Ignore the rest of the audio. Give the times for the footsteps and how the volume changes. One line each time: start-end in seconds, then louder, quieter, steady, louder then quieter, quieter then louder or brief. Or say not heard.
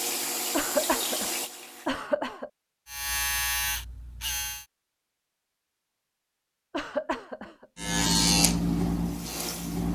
not heard.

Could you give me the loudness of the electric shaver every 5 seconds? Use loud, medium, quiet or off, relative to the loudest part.
medium, loud.